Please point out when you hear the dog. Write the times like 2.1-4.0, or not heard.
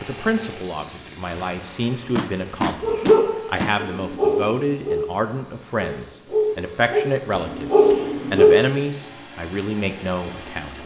2.8-8.6.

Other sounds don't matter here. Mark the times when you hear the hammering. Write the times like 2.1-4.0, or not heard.
2.1-3.8, 7.3-8.2.